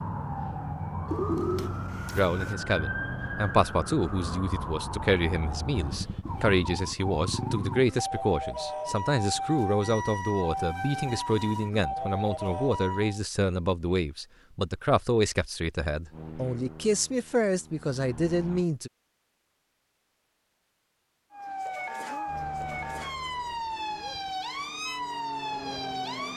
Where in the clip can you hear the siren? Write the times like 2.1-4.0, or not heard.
0.0-13.2, 21.3-26.3.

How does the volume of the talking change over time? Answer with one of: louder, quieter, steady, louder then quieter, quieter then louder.
steady.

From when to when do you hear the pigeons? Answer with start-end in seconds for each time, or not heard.
1.1-2.5.